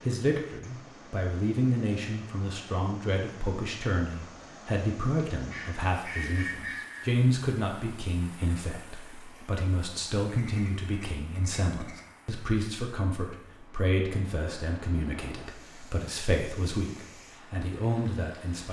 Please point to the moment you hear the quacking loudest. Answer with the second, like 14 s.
6 s.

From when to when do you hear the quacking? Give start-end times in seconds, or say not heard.
5.3-7.0, 10.2-12.1.